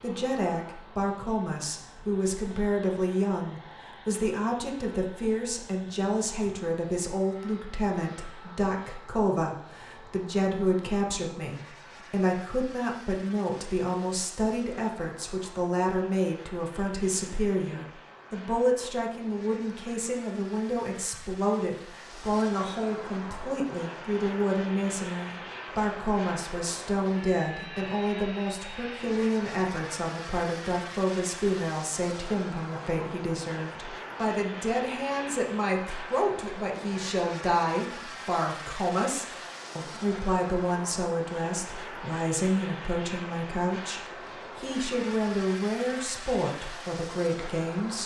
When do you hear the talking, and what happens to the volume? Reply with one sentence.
You can hear the talking from 0.0 to 48.0 s, at a steady volume.